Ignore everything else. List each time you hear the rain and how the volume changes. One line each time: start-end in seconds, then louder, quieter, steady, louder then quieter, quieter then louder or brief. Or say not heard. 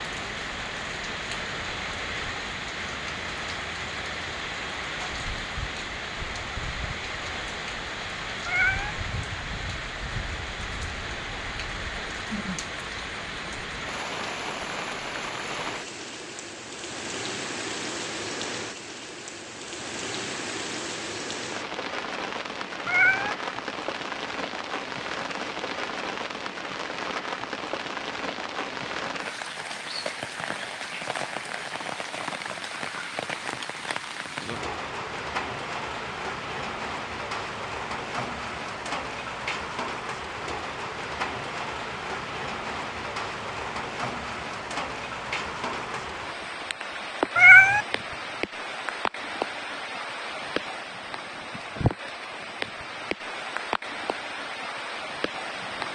0.0-55.8 steady.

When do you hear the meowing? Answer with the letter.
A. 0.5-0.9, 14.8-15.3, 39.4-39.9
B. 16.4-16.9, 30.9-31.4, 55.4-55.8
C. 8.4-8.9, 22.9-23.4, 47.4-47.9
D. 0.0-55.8
C.